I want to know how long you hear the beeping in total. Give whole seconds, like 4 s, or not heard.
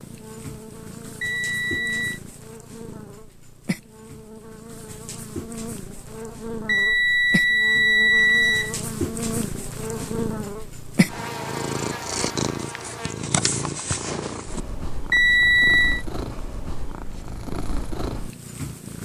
4 s.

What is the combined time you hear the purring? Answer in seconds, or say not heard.
19 s.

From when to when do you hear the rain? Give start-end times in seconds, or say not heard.
not heard.